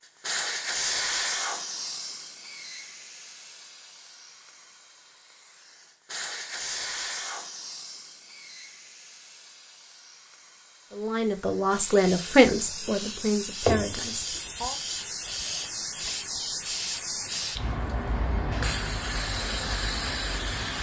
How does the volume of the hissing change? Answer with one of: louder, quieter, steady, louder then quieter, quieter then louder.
quieter then louder.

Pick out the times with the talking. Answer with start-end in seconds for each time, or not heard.
10.9-14.8.